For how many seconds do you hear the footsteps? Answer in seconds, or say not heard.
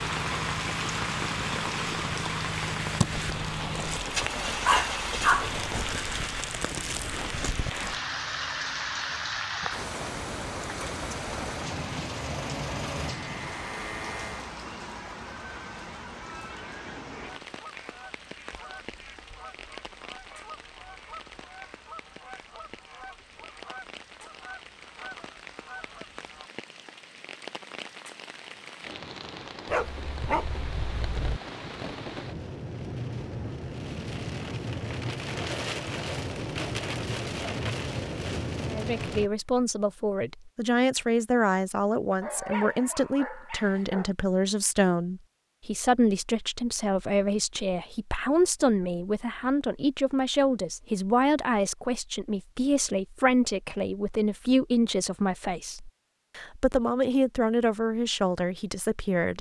not heard.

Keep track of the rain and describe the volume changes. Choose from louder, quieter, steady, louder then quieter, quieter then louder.
quieter then louder.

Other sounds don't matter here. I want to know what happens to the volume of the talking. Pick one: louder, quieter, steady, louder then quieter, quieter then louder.
steady.